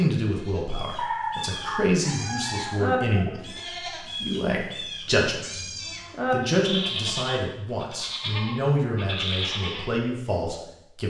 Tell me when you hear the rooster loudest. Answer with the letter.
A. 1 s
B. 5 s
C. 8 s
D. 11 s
A.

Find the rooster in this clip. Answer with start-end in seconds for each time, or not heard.
0.9-3.4.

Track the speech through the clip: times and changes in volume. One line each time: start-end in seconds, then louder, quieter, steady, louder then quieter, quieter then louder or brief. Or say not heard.
0.0-11.0 steady.